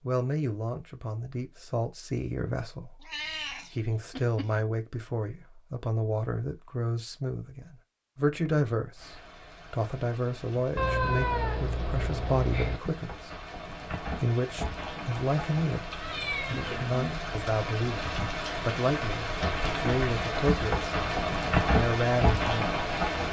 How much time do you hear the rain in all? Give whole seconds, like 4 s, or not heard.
14 s.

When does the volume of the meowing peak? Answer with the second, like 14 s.
11 s.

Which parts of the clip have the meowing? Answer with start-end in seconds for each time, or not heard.
3.0-4.6, 10.8-12.8, 16.0-17.0.